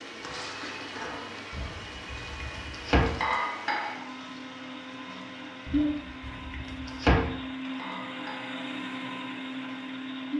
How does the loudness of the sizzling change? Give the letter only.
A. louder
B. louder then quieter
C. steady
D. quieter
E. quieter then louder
B.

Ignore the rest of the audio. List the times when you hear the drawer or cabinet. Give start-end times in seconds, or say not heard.
1.5-3.1, 5.7-7.2.